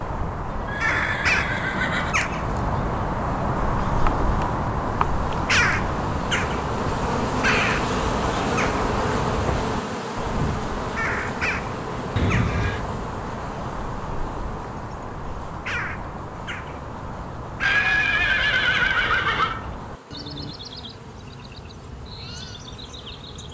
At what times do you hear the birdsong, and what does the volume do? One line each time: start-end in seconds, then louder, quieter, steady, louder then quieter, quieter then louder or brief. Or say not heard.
0.0-23.4 quieter.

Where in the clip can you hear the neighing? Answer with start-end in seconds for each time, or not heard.
0.7-2.1, 12.2-12.8, 17.6-19.6.